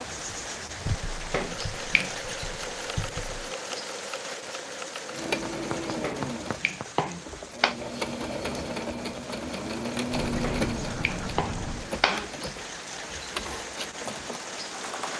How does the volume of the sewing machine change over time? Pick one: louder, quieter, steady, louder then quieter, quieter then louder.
louder then quieter.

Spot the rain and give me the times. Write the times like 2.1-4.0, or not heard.
0.0-15.1.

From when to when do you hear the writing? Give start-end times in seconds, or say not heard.
0.8-3.5, 5.7-7.0, 10.1-11.9.